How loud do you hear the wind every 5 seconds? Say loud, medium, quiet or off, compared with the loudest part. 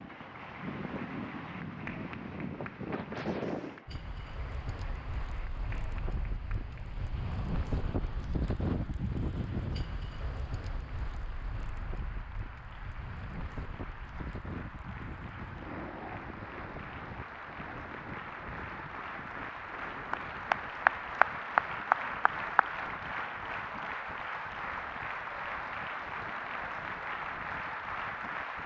loud, loud, medium, medium, quiet, quiet.